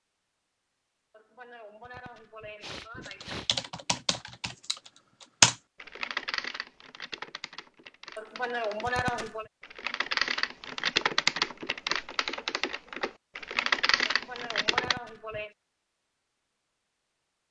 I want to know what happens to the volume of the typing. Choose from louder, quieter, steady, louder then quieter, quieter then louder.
quieter then louder.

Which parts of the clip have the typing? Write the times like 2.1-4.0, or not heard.
3.0-14.9.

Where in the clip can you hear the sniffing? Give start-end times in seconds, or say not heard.
1.1-3.5, 8.2-9.4, 14.1-15.6.